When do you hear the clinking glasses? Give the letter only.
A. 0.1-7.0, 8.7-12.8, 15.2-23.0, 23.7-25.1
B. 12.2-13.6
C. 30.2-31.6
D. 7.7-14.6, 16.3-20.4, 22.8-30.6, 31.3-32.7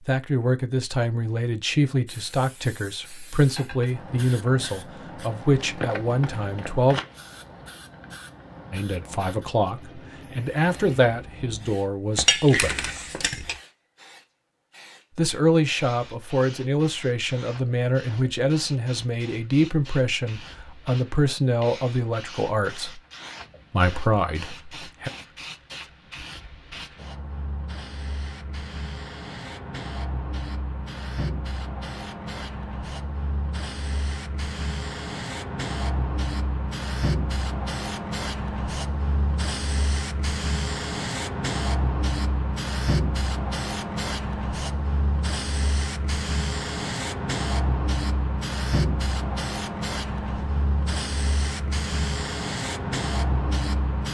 B.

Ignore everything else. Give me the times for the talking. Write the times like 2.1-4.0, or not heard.
0.1-7.0, 8.7-12.8, 15.2-23.0, 23.7-25.1.